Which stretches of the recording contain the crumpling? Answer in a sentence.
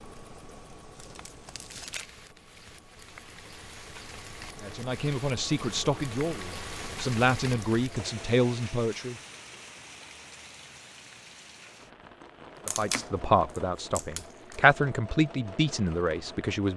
The crumpling can be heard from 0.9 to 2.1 s and from 12.7 to 14.6 s.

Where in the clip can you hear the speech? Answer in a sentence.
The speech can be heard from 4.6 to 9.2 s and from 12.7 to 16.7 s.